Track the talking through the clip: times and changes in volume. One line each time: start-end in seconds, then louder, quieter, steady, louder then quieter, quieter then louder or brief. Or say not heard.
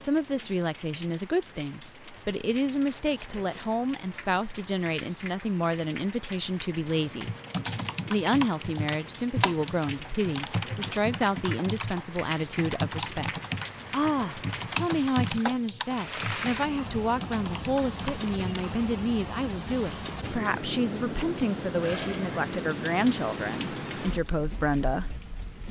0.0-7.3 steady
8.1-25.1 steady.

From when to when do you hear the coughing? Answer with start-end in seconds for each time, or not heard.
not heard.